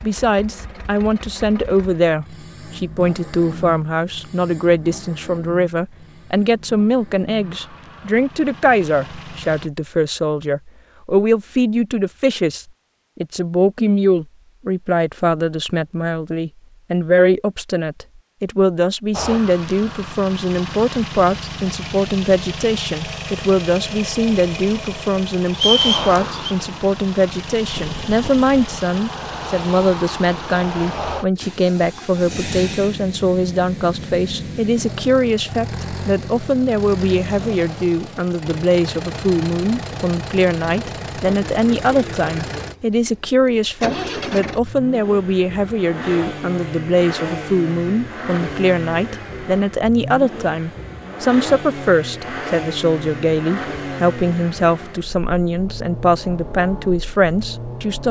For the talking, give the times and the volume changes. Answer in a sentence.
The talking can be heard from 0.0 to 58.0 s, at a steady volume.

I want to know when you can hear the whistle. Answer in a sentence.
The whistle can be heard from 25.5 to 26.6 s.